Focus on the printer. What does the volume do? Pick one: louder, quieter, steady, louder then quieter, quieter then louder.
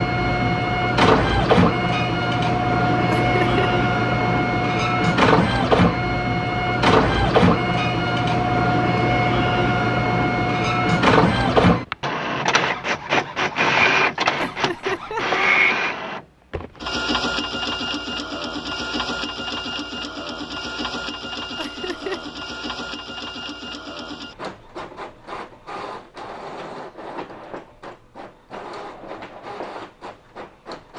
quieter.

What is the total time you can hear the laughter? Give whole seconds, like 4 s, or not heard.
2 s.